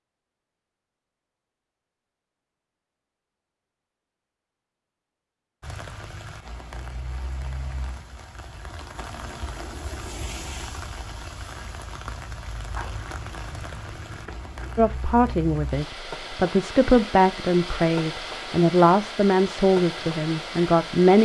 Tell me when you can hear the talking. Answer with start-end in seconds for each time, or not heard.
14.8-21.2.